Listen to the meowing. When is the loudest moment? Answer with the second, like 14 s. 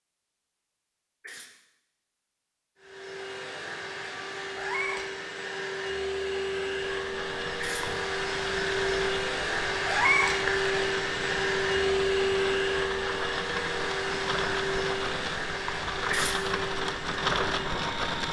10 s.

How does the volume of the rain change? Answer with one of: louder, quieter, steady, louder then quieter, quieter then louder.
louder.